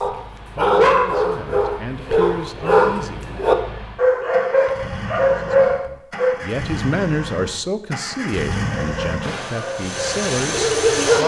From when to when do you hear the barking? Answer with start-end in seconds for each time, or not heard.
0.0-6.3, 8.7-11.2.